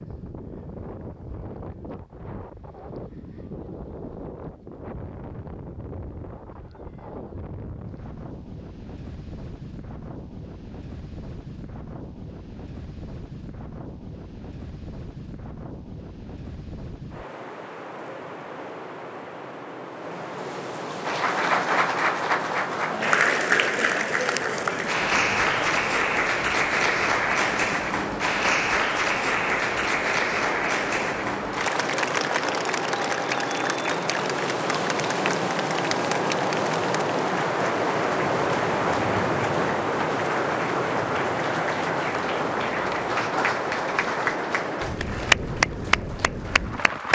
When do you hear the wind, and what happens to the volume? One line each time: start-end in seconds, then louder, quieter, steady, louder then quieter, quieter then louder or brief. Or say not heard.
0.0-47.1 louder.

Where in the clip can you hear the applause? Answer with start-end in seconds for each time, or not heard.
21.1-47.1.